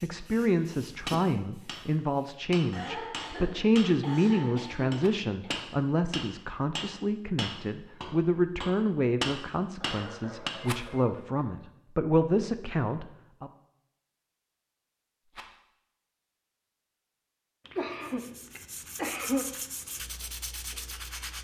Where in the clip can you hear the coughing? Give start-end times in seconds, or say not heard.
2.7-5.5, 9.8-11.5, 17.6-19.4.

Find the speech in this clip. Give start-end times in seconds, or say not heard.
0.0-13.5.